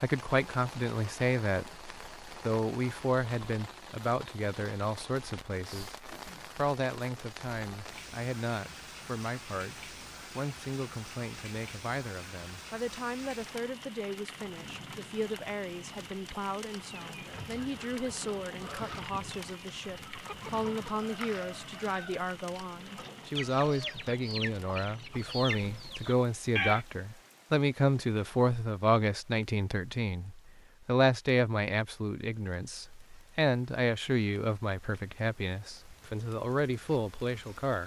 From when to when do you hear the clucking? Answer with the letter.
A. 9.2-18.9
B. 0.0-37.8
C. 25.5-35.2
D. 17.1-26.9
D.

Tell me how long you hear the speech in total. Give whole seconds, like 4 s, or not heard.
38 s.